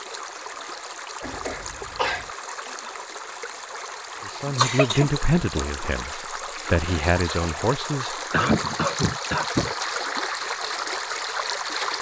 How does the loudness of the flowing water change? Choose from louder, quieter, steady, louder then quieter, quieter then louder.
louder.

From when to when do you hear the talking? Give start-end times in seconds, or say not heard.
4.2-8.7.